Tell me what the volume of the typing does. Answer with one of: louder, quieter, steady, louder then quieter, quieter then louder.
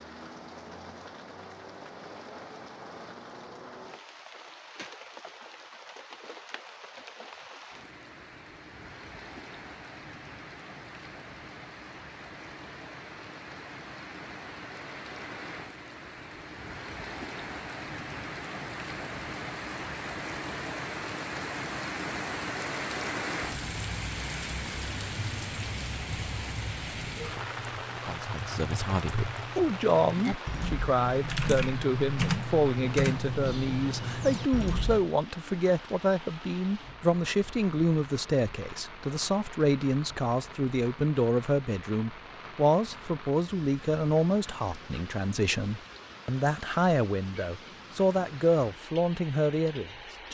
louder.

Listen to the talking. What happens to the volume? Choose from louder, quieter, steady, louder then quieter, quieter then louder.
steady.